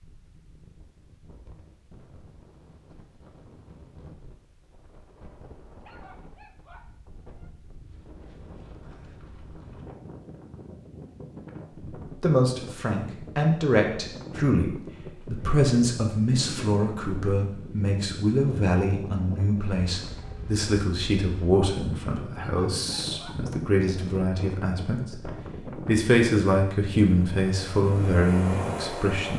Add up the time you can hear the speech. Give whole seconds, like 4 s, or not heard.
17 s.